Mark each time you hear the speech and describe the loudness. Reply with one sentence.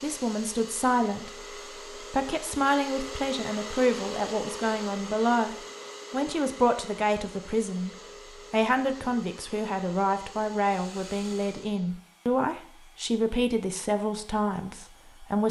The speech can be heard from 0.0 to 15.4 s, at a steady volume.